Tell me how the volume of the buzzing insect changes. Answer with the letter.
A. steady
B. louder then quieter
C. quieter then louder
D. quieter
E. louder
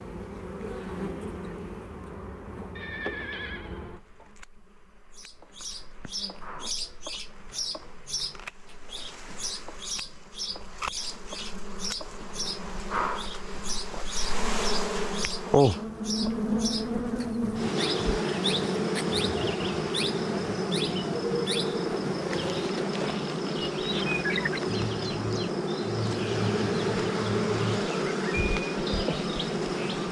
E.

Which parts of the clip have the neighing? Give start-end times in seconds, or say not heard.
2.8-4.3.